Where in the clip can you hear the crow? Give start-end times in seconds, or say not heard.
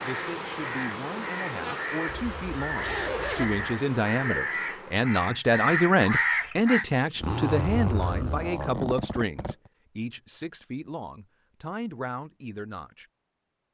0.0-6.8.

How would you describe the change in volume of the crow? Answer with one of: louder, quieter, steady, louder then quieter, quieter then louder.
louder.